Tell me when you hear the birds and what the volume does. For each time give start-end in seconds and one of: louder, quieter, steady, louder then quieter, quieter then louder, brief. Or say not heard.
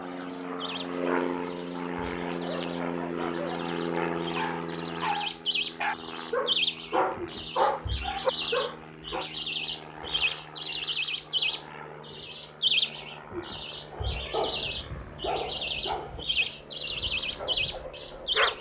0.0-18.5 louder.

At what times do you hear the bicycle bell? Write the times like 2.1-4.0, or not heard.
not heard.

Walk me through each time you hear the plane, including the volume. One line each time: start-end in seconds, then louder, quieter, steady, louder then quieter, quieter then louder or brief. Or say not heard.
0.0-18.5 quieter.